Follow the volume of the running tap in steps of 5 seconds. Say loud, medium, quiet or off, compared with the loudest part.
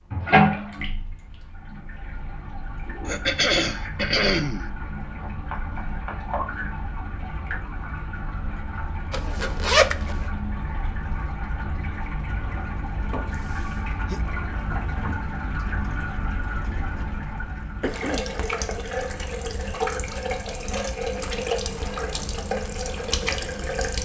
loud, medium, medium, loud, loud.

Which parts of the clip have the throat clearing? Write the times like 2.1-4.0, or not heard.
3.0-4.7, 13.3-14.2, 17.8-18.2.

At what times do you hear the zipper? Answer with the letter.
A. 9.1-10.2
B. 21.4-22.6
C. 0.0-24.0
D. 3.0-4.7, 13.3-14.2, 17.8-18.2
A.